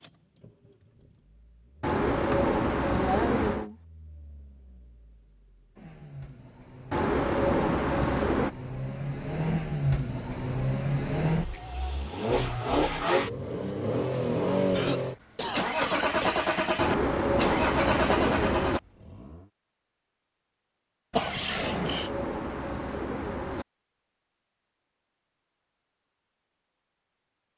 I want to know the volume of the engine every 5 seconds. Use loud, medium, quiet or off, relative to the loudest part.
quiet, medium, loud, loud, off, off.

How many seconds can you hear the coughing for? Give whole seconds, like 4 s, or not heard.
4 s.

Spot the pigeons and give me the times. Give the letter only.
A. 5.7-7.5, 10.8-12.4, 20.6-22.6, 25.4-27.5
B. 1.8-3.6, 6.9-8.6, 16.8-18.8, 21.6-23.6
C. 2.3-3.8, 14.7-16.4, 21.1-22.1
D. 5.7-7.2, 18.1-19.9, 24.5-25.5
B.